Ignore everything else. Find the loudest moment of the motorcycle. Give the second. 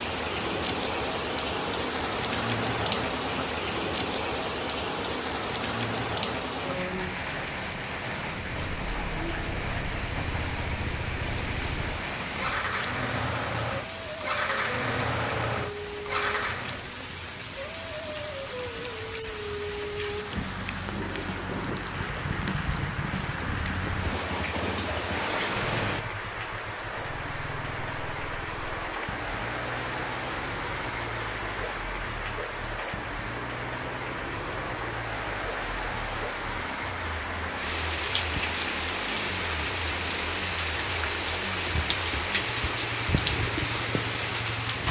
15 s.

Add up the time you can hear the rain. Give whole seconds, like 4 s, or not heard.
45 s.